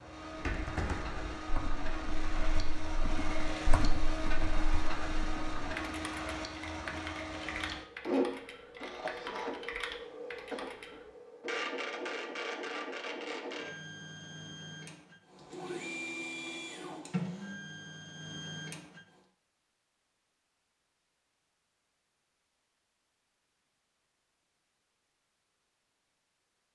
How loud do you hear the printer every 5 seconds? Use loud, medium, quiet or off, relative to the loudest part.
loud, loud, loud, loud, off, off.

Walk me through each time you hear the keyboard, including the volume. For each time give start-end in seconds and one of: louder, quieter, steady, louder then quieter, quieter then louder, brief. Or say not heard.
0.3-11.0 steady.